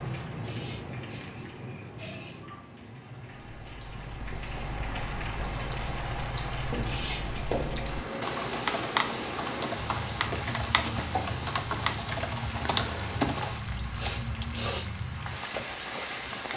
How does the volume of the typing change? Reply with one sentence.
The volume of the typing goes up.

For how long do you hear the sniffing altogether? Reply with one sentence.
The sniffing can be heard for 4 seconds in total.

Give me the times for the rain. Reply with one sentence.
The rain can be heard from 0.0 to 16.5 s.